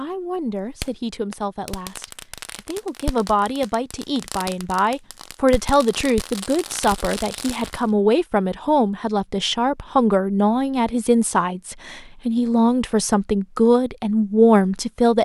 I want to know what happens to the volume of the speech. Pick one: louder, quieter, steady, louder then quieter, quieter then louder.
louder.